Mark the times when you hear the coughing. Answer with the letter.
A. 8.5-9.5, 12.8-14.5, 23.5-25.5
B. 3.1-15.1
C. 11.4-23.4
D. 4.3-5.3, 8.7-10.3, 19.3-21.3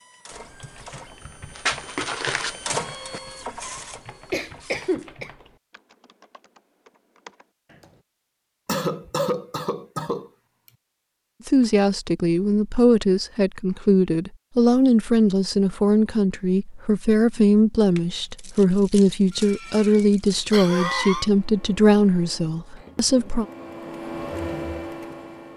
D.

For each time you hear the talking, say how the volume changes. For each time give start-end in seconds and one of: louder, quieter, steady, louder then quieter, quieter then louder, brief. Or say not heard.
11.4-23.4 steady.